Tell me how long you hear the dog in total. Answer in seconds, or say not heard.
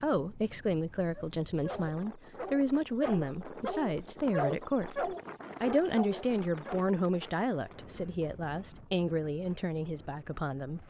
6 s.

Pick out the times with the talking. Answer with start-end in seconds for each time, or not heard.
0.0-10.8.